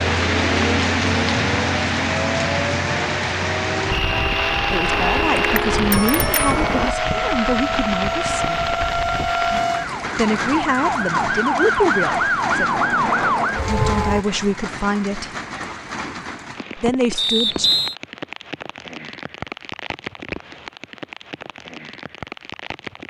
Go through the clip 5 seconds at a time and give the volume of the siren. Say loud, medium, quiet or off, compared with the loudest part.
medium, loud, loud, off, off.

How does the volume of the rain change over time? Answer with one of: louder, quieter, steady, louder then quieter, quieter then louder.
quieter.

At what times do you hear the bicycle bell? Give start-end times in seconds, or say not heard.
4.9-6.9.